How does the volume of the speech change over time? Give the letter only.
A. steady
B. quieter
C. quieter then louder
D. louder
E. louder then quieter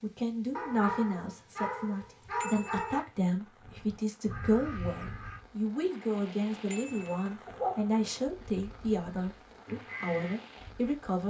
A.